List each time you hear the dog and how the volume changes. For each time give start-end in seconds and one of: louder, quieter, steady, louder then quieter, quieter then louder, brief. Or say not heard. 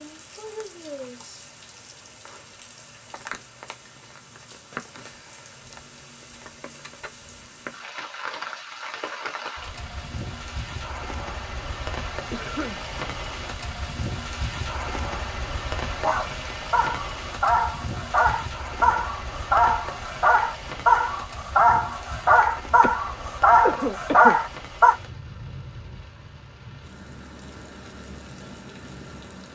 15.8-24.9 louder.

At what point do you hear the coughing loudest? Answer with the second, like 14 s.
24 s.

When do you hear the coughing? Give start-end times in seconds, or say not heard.
12.3-12.8, 22.8-24.4.